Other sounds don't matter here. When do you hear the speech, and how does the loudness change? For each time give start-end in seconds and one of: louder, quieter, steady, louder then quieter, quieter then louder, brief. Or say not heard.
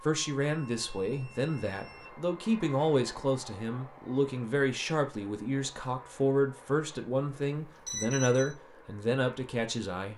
0.0-10.1 steady.